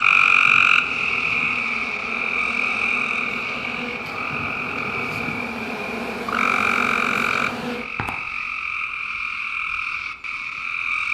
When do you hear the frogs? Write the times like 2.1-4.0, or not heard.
0.0-11.0.